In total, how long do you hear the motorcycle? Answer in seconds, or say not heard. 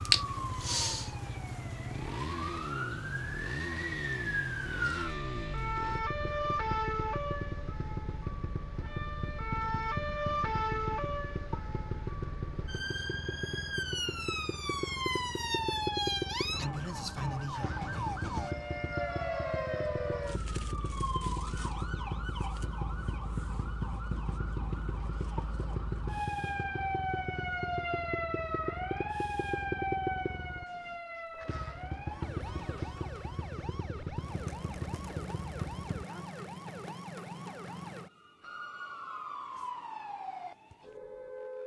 36 s.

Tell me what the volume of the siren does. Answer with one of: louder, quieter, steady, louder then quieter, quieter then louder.
quieter.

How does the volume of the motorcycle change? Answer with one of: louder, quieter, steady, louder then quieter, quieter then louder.
steady.